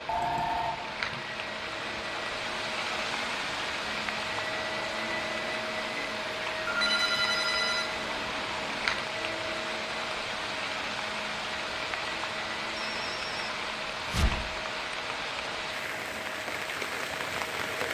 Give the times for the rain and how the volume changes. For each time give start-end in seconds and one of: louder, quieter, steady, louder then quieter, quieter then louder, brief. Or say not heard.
0.0-17.8 steady.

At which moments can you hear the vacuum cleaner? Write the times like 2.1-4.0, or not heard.
0.0-17.8.